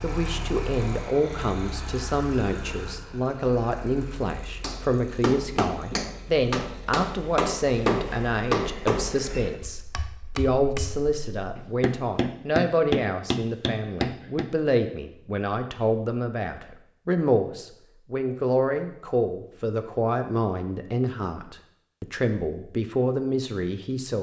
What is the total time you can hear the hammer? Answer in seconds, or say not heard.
10 s.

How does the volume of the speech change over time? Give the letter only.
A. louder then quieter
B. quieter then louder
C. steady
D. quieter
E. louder
C.